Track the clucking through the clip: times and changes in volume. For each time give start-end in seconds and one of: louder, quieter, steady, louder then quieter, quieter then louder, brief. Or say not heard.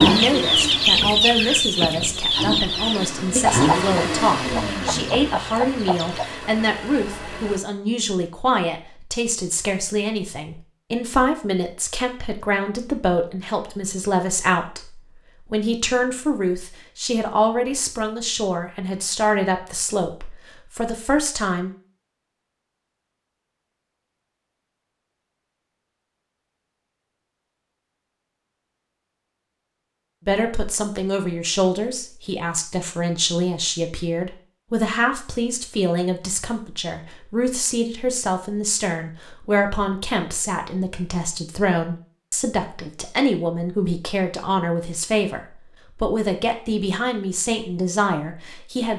0.0-6.4 quieter.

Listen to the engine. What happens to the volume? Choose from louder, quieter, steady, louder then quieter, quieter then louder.
louder then quieter.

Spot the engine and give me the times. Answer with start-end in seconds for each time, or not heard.
0.0-7.5.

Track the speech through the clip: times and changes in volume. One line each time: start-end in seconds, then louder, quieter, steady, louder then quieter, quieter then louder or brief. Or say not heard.
0.1-21.7 steady
30.2-48.9 steady.